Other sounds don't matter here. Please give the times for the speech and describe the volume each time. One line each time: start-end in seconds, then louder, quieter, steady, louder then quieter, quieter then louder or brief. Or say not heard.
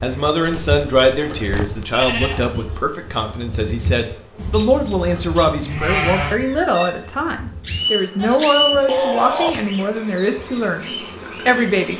0.0-11.9 steady.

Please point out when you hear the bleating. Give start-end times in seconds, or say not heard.
0.4-2.4, 4.3-6.4, 8.2-9.5.